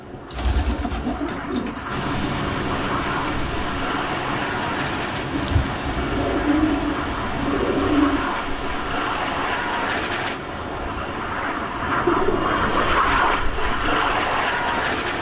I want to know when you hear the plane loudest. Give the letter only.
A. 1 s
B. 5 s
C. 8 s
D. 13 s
D.